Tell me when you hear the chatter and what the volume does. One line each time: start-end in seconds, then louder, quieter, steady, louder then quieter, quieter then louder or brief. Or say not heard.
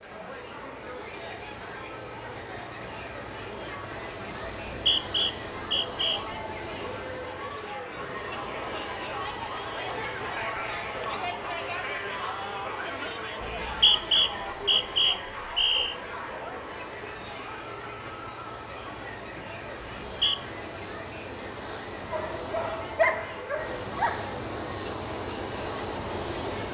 0.0-26.6 louder then quieter.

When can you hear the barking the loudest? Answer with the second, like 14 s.
23 s.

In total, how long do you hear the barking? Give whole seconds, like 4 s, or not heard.
2 s.